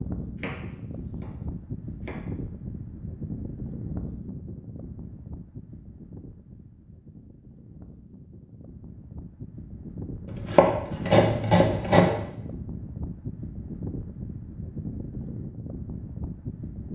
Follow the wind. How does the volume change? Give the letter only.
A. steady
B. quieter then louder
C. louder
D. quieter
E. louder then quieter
B.